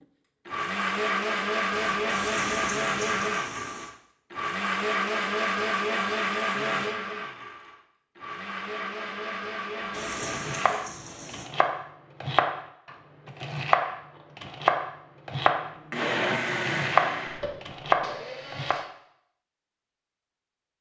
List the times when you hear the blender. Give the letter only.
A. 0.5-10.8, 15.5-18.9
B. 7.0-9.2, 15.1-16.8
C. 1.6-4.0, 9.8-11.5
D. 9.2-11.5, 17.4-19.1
A.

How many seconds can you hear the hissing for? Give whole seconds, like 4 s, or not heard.
4 s.